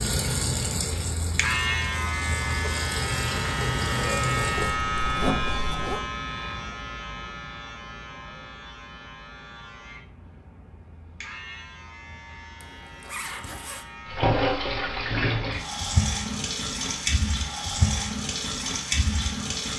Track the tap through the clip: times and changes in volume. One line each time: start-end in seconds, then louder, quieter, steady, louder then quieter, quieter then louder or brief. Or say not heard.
0.0-4.8 quieter then louder
14.1-19.7 steady.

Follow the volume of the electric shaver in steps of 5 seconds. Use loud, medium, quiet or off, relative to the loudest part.
loud, medium, quiet, quiet.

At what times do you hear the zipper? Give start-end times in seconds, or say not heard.
4.5-6.0, 12.6-13.8.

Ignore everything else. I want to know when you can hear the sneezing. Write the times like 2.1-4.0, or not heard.
not heard.